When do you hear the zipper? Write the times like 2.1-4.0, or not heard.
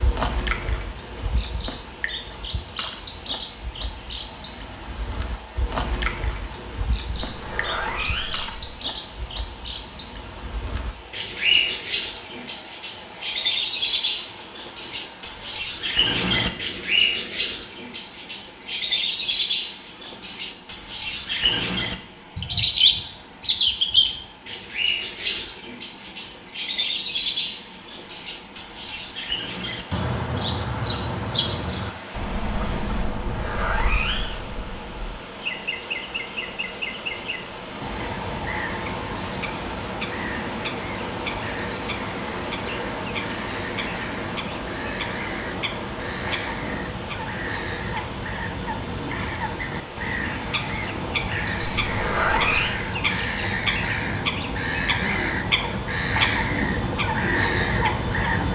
7.2-8.8, 33.2-34.5, 51.7-52.8.